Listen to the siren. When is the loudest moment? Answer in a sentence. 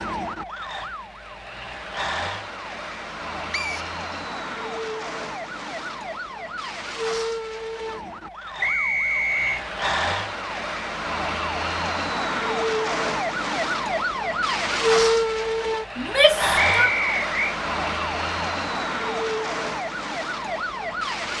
The volume of the siren peaks at 15 seconds.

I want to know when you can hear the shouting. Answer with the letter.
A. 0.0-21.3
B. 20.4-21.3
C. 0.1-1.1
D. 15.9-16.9
D.